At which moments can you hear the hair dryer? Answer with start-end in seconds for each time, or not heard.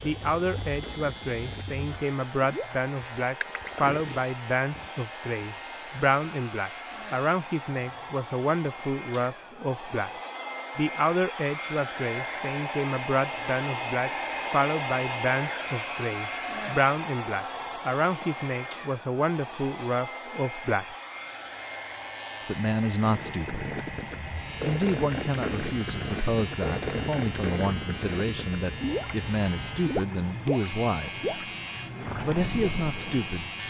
0.0-33.6.